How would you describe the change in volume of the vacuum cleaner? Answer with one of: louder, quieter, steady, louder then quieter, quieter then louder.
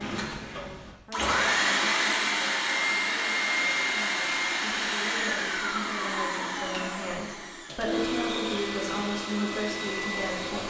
quieter.